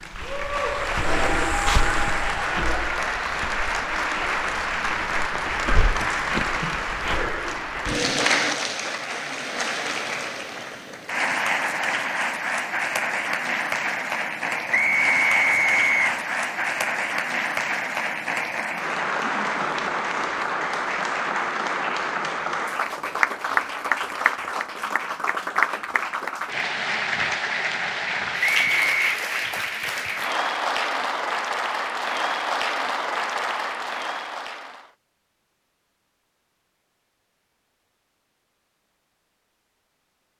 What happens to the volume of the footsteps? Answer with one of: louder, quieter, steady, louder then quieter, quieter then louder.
quieter then louder.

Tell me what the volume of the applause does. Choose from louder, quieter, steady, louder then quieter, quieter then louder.
steady.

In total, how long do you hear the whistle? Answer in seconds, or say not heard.
2 s.